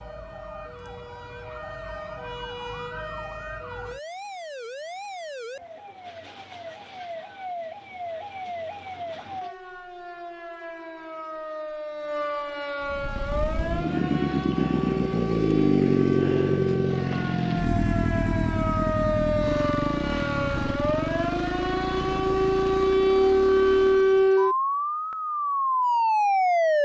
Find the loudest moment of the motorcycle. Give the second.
16 s.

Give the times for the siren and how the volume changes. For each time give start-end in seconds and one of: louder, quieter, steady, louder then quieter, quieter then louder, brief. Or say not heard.
0.0-26.7 louder.